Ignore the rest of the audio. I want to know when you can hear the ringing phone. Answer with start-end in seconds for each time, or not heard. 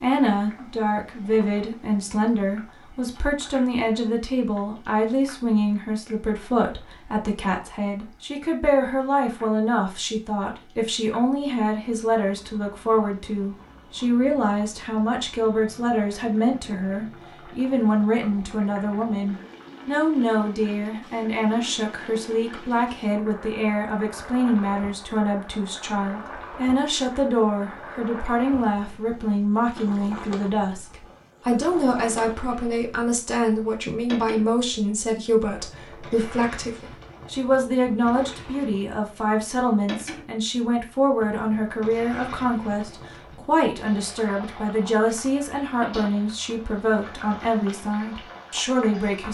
not heard.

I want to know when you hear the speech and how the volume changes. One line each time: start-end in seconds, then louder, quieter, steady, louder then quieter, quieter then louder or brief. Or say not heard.
0.0-49.2 steady.